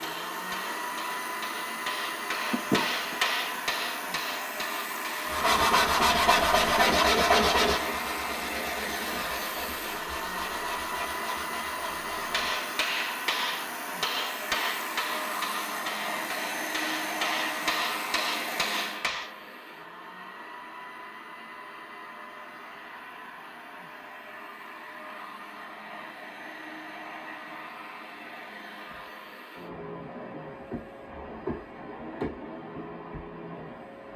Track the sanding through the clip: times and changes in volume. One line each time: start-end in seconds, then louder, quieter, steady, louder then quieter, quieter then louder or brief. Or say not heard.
5.2-12.7 quieter.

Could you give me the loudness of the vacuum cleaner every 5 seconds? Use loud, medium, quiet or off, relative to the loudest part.
loud, loud, loud, loud, medium, medium, medium.